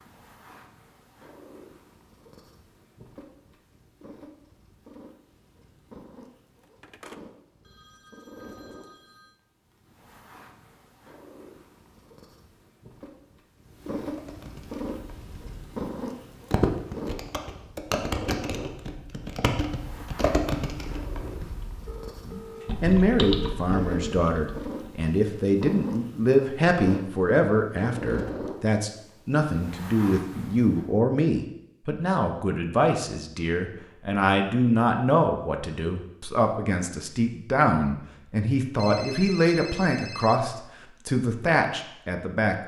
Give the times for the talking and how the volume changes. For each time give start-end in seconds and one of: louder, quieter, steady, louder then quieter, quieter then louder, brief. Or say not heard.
22.2-42.5 steady.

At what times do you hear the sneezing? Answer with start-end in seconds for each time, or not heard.
not heard.